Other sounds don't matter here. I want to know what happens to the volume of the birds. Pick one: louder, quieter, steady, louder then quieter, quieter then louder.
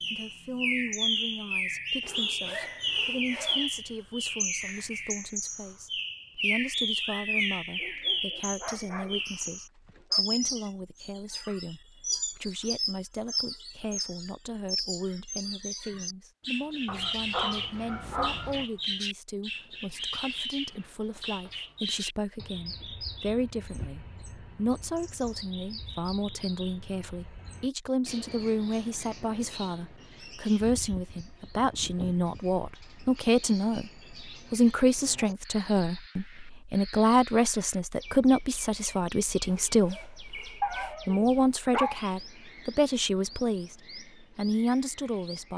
quieter.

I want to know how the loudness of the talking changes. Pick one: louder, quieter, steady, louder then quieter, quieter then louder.
louder.